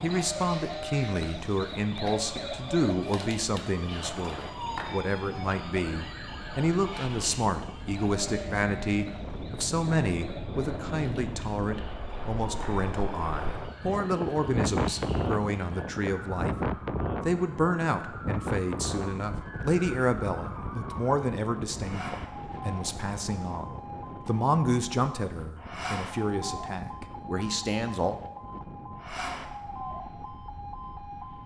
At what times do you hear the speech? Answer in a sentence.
You can hear the speech from 0.0 to 28.1 s.